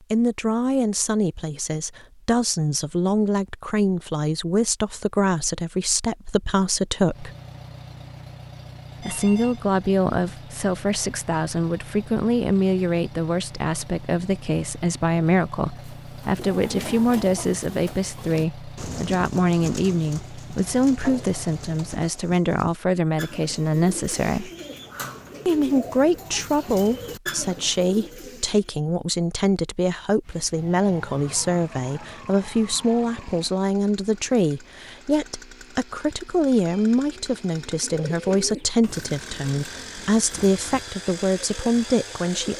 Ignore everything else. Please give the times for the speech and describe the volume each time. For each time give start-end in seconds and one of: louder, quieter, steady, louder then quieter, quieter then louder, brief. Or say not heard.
0.1-7.3 steady
9.0-24.5 steady
25.4-42.5 steady.